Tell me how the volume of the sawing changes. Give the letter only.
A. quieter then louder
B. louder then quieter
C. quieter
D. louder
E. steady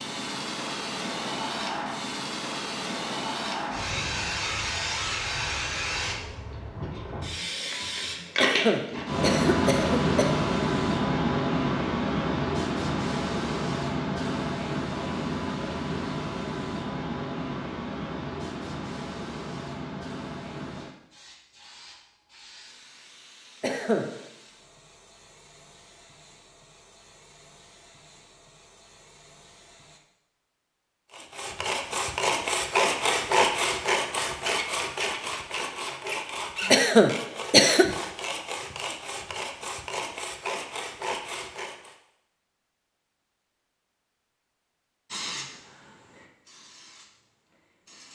C.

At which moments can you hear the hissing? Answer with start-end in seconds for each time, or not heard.
0.0-30.0, 45.0-48.0.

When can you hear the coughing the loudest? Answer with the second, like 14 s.
37 s.